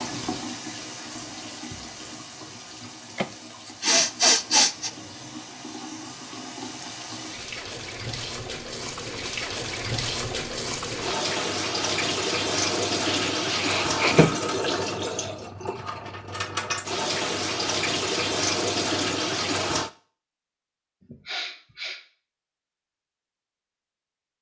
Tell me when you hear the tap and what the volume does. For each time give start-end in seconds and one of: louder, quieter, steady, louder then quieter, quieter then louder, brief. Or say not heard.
0.0-19.9 louder.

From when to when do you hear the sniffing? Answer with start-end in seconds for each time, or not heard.
3.1-4.9, 13.1-14.3, 21.0-22.0.